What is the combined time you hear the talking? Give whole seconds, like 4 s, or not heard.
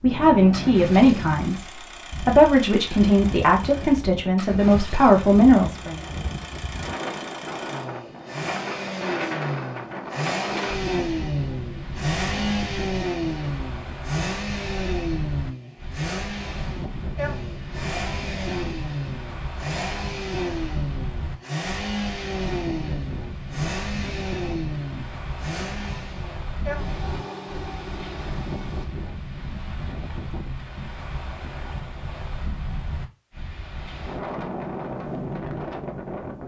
6 s.